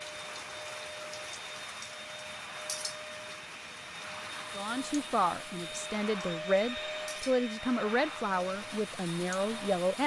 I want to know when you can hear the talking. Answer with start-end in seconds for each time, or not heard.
4.5-10.0.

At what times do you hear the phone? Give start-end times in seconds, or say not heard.
not heard.